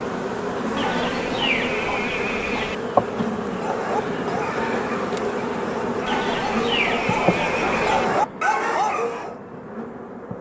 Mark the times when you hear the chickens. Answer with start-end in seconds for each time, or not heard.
0.8-2.8, 6.0-8.1.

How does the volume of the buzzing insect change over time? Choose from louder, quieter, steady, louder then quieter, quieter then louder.
quieter.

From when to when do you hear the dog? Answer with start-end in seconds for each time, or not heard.
3.4-9.3.